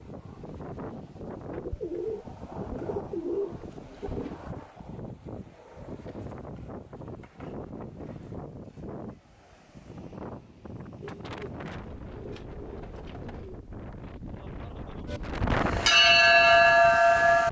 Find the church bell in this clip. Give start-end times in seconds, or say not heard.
15.1-17.4.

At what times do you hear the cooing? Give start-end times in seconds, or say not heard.
1.5-4.4, 11.0-13.6.